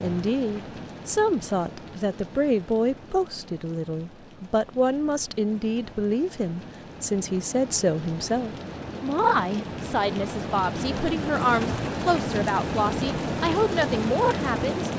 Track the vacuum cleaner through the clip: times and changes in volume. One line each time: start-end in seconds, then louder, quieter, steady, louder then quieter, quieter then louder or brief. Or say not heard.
not heard.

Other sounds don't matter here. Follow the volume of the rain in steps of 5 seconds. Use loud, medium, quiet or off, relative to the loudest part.
quiet, medium, loud.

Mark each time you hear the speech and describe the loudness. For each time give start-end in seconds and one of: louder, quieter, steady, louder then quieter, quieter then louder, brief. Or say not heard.
0.0-14.9 steady.